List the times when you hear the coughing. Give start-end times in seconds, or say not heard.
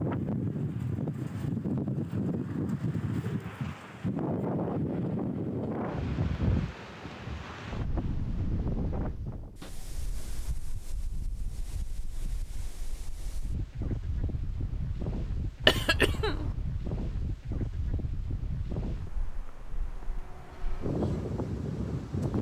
15.7-16.5.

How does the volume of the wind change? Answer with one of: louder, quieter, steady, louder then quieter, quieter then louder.
quieter then louder.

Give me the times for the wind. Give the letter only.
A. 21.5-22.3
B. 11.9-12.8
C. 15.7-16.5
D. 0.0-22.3
D.